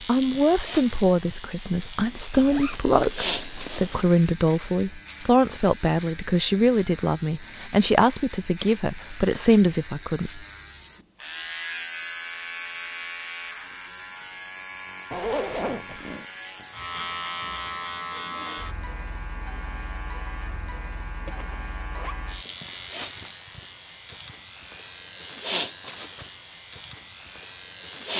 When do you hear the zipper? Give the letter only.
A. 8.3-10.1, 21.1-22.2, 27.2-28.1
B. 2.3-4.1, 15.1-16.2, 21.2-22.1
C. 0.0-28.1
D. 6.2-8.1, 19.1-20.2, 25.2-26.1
B.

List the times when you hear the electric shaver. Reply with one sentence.
You can hear the electric shaver from 0.0 to 28.1 s.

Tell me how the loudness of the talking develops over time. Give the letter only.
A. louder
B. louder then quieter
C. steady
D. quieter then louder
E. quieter
C.